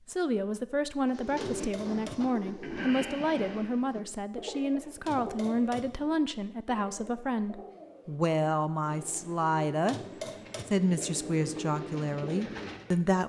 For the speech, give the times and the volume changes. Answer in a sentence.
The speech can be heard from 0.1 to 9.9 s, at a steady volume; and briefly from 10.7 to 13.2 s.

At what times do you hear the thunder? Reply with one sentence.
You can't hear the thunder here.